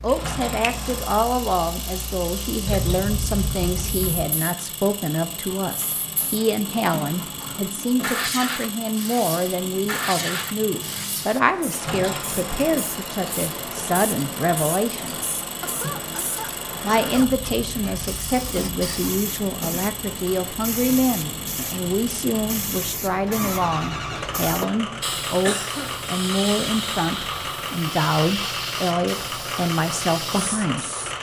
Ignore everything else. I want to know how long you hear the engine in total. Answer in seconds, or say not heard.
31 s.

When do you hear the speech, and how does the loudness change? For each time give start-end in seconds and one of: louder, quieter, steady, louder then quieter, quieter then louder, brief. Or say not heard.
0.0-15.2 steady
16.8-30.9 steady.